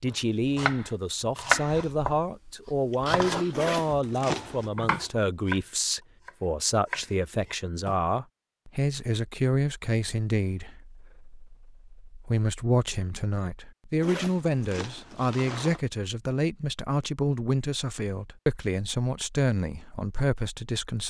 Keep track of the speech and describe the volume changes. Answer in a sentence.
The volume of the speech stays about the same.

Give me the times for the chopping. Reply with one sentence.
You can hear the chopping from 0.4 to 8.0 s.